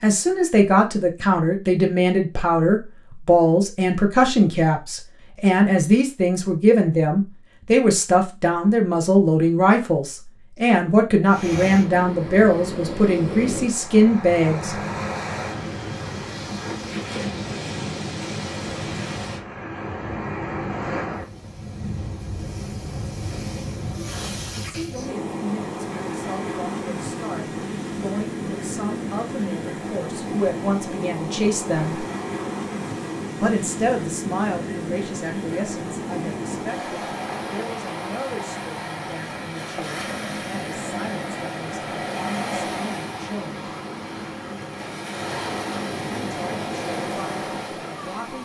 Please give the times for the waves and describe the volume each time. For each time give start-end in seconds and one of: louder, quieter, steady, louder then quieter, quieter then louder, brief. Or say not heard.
11.2-48.4 steady.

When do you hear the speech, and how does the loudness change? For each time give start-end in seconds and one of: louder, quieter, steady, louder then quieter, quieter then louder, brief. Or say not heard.
0.0-14.8 steady
24.6-32.0 louder
33.4-43.6 quieter
46.1-48.4 brief.